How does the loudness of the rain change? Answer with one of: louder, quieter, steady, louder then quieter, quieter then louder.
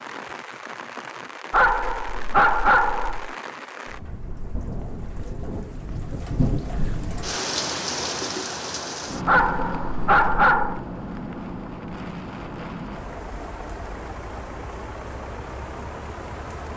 louder then quieter.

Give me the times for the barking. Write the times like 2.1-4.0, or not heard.
1.5-3.4, 9.2-10.8.